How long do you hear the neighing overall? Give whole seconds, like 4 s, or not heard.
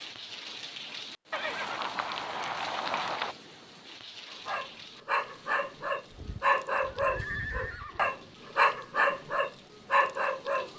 4 s.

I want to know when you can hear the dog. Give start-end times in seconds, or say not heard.
4.3-10.7.